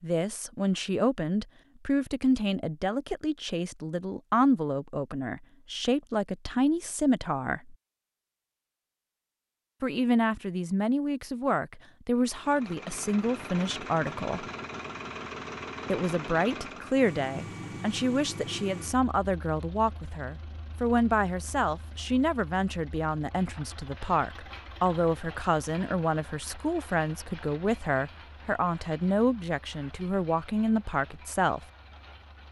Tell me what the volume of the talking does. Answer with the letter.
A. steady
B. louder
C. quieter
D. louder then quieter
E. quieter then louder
A.